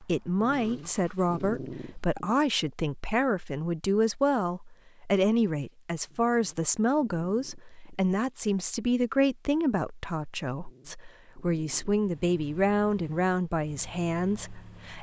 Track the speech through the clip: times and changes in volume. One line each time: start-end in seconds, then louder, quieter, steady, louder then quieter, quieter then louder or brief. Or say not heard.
0.0-14.9 steady.